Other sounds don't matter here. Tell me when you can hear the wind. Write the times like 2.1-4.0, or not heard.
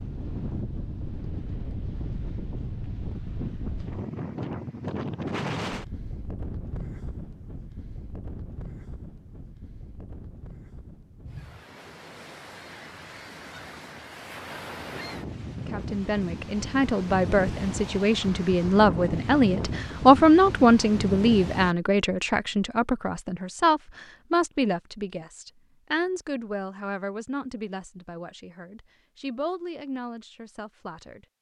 0.0-21.8.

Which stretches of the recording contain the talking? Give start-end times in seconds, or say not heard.
15.6-31.3.